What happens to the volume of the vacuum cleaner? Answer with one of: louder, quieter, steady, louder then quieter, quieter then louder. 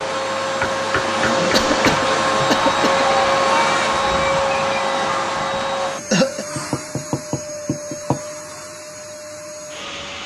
quieter.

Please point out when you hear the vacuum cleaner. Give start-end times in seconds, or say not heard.
0.0-10.2.